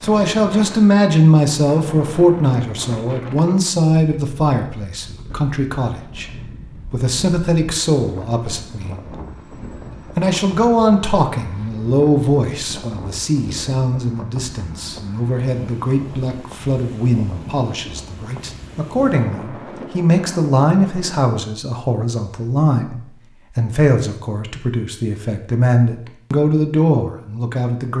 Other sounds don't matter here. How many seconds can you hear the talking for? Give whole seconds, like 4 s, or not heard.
26 s.